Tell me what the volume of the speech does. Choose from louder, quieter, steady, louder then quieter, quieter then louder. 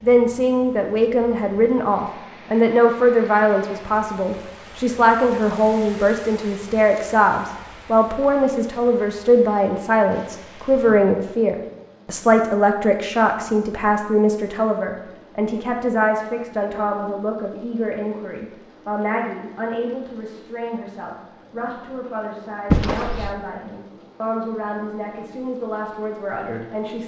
quieter.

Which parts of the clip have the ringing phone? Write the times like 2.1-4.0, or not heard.
22.7-23.4.